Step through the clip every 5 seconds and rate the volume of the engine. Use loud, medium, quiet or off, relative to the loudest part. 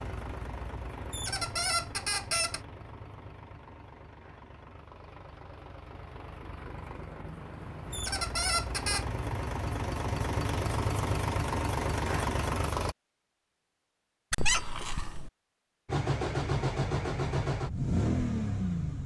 quiet, medium, loud, loud.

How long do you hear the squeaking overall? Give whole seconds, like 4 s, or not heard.
4 s.